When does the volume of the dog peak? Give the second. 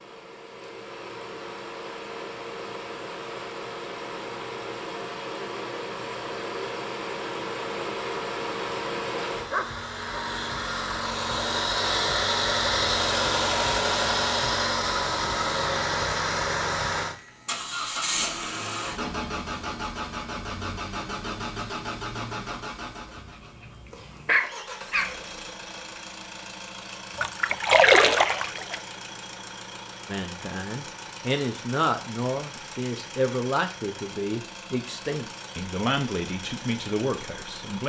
24 s.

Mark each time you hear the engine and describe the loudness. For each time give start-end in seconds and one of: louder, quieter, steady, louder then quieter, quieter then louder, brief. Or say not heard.
0.0-37.8 louder then quieter.